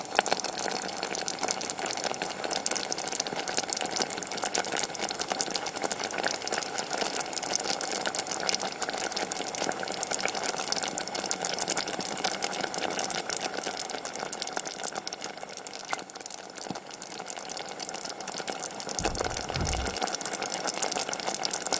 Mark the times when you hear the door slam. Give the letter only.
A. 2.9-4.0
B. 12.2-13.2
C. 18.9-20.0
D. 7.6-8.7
C.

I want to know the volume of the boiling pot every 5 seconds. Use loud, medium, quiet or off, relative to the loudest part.
loud, loud, loud, medium, loud.